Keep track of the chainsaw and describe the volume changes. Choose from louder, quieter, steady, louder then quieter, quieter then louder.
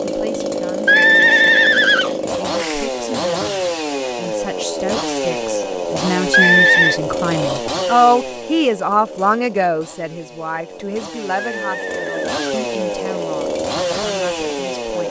quieter then louder.